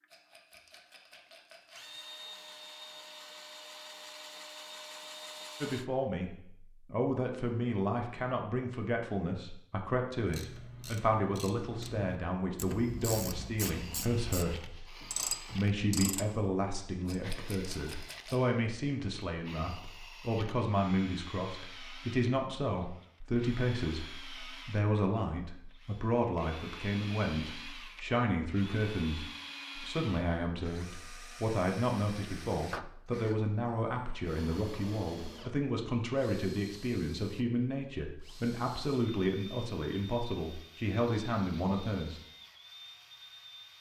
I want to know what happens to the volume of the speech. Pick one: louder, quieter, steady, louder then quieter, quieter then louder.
steady.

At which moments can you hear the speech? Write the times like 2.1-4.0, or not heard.
5.6-42.2.